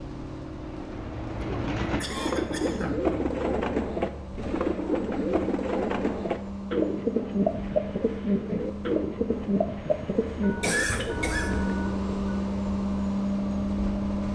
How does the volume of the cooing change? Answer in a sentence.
The volume of the cooing stays about the same.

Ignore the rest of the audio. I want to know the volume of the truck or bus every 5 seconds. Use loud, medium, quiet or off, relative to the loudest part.
medium, medium, loud.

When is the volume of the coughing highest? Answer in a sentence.
The loudest moment of the coughing is at 11 seconds.